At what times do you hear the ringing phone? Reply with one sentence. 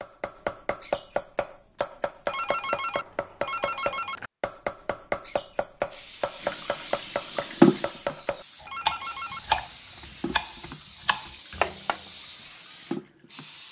You can hear the ringing phone from 2.2 to 4.3 s and from 8.7 to 9.5 s.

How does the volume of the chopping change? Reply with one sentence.
The volume of the chopping stays about the same.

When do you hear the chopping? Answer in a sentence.
You can hear the chopping from 0.0 to 12.0 s.